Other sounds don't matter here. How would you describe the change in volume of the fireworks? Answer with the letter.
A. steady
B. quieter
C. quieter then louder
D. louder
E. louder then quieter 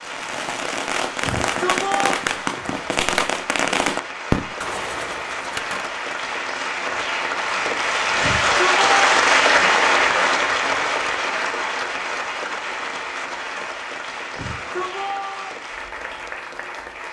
E.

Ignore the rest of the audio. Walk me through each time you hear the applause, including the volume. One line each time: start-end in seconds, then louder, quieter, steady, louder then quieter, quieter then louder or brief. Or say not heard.
0.0-17.0 louder then quieter.